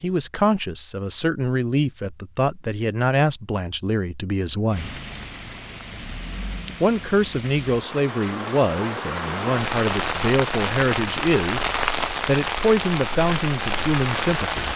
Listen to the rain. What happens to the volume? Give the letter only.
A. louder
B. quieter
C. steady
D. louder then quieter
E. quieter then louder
A.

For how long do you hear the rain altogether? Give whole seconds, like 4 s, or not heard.
10 s.